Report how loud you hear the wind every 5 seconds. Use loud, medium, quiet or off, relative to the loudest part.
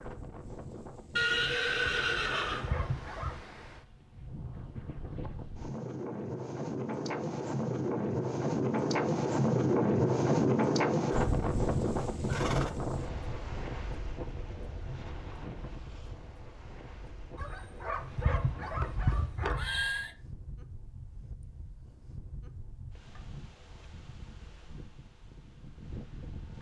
quiet, loud, loud, quiet, quiet, quiet.